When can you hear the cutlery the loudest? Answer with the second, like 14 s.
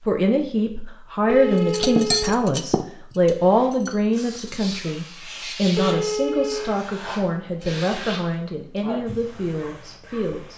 2 s.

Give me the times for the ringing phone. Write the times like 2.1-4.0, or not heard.
1.2-2.4, 5.8-6.8.